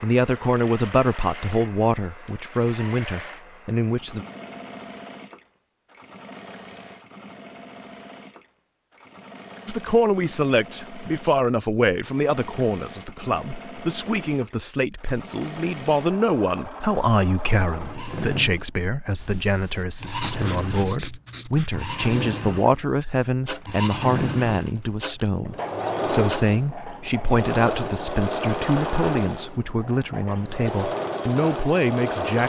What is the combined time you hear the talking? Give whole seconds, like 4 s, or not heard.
27 s.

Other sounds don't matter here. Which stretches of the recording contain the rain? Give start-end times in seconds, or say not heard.
not heard.